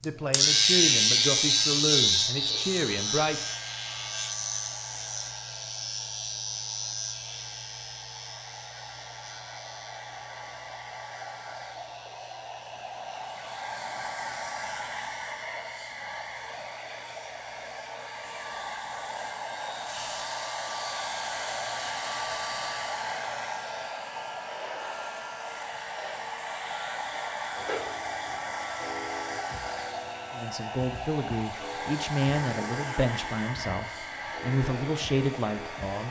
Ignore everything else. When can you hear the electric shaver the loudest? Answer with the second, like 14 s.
1 s.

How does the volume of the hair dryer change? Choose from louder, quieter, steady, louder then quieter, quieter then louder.
louder.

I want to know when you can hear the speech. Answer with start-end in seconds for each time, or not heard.
0.0-3.5, 30.3-36.0.